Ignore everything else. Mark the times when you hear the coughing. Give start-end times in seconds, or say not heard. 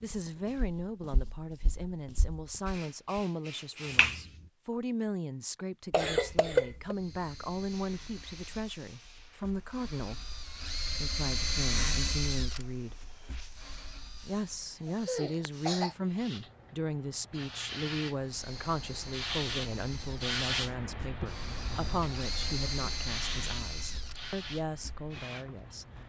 5.9-7.0, 15.1-15.9.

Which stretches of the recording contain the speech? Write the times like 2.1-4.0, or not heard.
0.0-10.2, 11.0-13.2, 14.1-25.9.